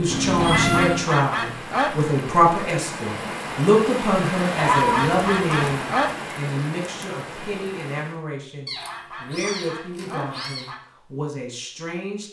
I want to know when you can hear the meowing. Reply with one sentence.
You can hear the meowing from 0.1 to 1.1 s, from 4.5 to 5.8 s and from 8.7 to 10.7 s.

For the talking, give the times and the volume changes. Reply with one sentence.
You can hear the talking from 0.0 to 12.2 s, getting quieter.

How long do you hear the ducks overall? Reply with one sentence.
You can hear the ducks for 5 seconds altogether.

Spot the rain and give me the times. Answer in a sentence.
You can hear the rain from 0.0 to 8.2 s.